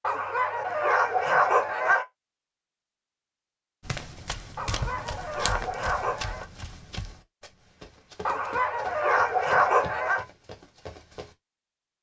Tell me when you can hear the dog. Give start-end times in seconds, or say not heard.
0.0-2.0, 4.5-6.5, 8.2-10.2.